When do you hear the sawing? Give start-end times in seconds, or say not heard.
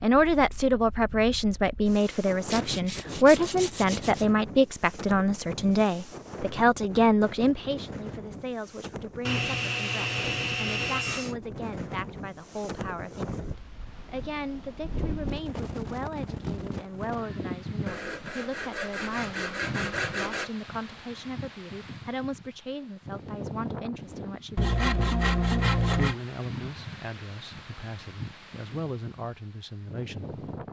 2.5-4.2, 9.2-11.3, 17.9-20.5, 24.6-26.1.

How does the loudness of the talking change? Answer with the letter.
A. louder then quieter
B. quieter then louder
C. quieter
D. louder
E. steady
C.